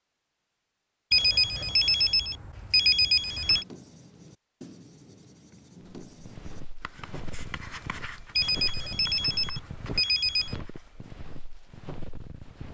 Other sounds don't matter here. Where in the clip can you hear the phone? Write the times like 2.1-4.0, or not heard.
1.1-3.6, 8.3-10.6.